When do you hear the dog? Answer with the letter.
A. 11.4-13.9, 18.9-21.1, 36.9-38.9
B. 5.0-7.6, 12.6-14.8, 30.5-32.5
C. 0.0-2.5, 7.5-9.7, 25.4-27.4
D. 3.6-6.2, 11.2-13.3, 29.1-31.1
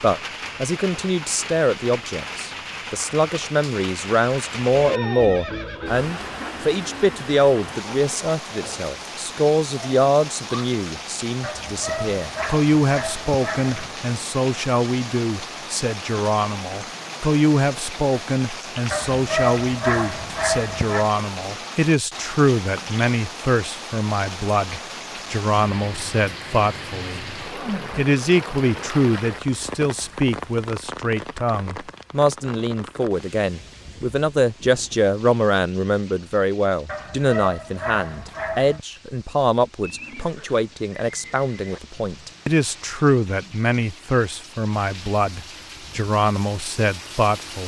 A.